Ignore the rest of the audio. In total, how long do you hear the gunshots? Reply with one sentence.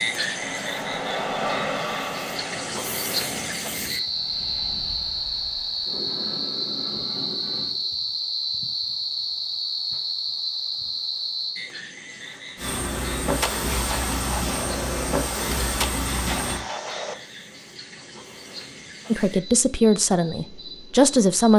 You can hear the gunshots for 4 seconds altogether.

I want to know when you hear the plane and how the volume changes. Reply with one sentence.
The plane can be heard from 0.0 to 7.8 s, getting quieter then louder; and from 12.6 to 16.6 s, at a steady volume.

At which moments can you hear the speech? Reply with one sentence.
You can hear the speech from 19.1 to 21.5 s.